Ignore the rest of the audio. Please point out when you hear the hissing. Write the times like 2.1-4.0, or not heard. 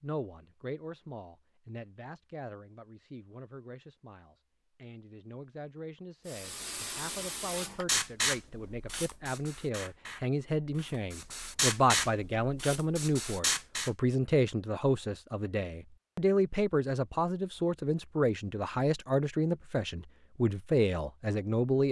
6.2-13.9.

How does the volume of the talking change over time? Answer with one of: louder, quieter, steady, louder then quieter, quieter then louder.
louder.